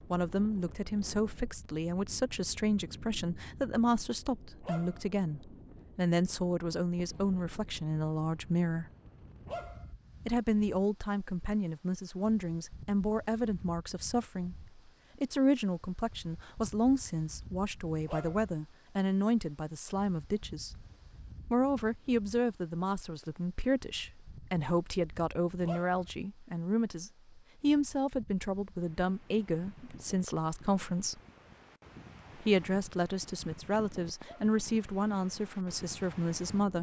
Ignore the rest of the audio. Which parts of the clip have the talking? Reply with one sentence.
The talking can be heard from 0.1 to 8.8 s, from 10.2 to 20.8 s, from 21.5 to 31.2 s and from 32.4 to 36.7 s.